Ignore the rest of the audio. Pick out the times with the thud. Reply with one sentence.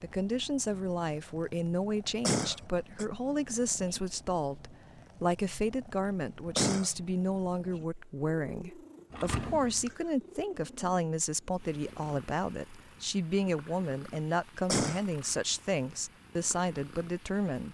You can hear the thud from 9.1 to 9.9 s.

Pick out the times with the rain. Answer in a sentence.
You can't hear the rain here.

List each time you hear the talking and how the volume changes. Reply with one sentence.
You can hear the talking from 0.0 to 17.6 s, at a steady volume.